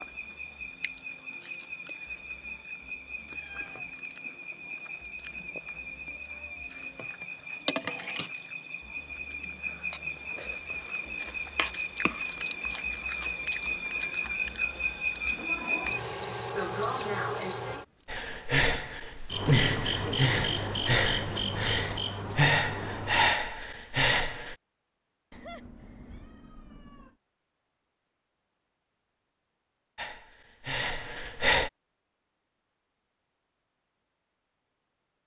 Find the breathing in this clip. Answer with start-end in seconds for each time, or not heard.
18.1-24.6, 29.9-31.7.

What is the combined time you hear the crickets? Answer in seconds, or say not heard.
23 s.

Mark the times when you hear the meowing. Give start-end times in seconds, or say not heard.
3.3-4.0, 25.3-27.1.